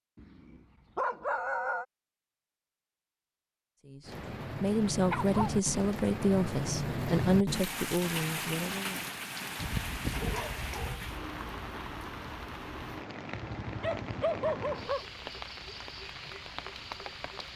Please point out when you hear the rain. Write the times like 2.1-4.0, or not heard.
4.0-17.5.